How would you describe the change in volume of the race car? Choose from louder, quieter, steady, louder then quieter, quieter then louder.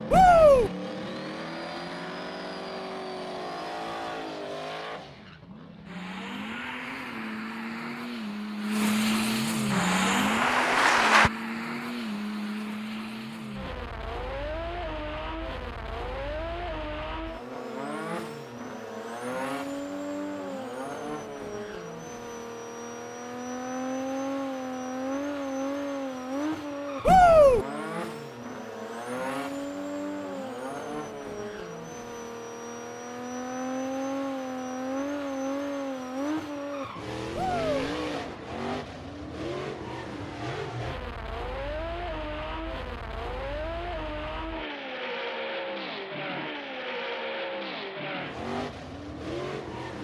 steady.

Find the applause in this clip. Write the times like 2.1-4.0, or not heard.
9.7-11.3.